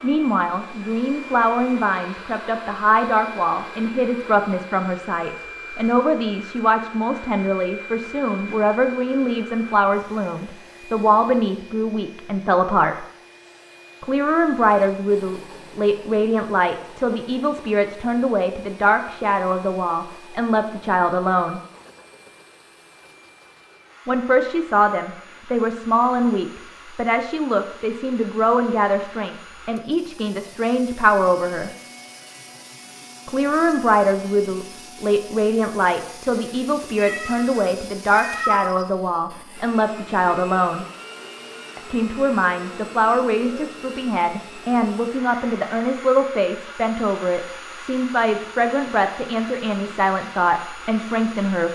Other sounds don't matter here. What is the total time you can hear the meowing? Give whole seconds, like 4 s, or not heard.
2 s.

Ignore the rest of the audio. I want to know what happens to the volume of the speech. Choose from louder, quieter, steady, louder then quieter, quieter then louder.
steady.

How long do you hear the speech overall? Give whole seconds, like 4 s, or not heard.
46 s.